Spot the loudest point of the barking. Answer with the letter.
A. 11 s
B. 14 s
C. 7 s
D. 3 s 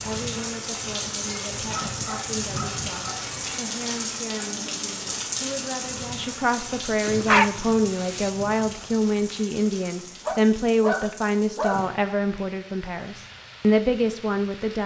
C.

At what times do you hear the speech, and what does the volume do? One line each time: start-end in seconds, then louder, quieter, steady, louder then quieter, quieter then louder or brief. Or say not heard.
0.0-14.8 louder.